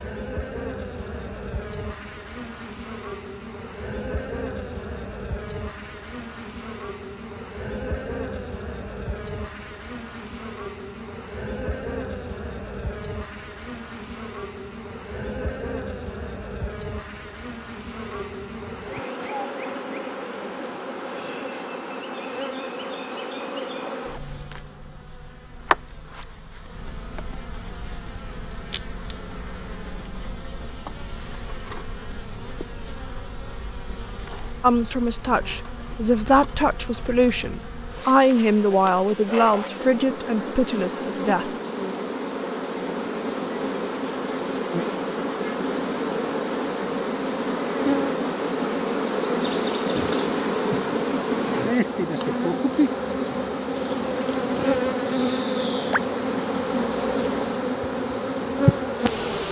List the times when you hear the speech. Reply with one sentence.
You can hear the speech from 34.6 to 41.5 s.